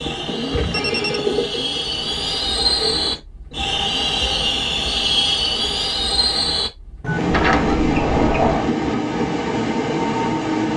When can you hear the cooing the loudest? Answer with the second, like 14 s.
1 s.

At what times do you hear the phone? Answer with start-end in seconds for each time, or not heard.
0.7-1.5, 7.0-7.8.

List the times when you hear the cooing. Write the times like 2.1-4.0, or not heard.
0.0-3.8.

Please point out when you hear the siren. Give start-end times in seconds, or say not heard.
not heard.